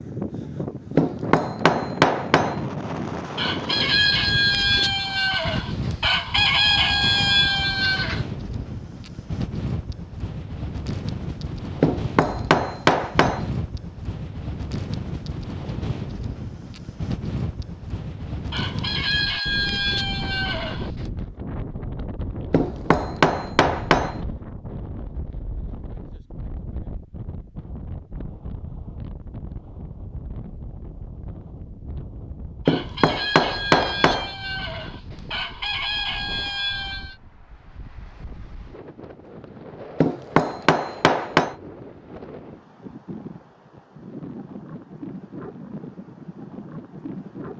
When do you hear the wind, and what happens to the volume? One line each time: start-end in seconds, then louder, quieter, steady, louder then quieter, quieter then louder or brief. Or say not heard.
0.0-47.5 quieter.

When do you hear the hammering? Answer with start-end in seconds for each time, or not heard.
0.9-2.6, 11.8-13.4, 22.5-24.2, 32.6-34.3, 40.0-41.5.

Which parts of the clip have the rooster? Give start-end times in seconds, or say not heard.
3.4-8.2, 18.5-21.1, 32.6-37.1.